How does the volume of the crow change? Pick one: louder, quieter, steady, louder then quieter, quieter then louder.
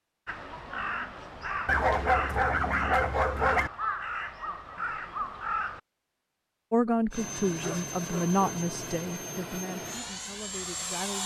steady.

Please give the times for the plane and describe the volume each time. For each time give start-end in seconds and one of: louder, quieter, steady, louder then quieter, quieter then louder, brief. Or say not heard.
7.1-11.2 steady.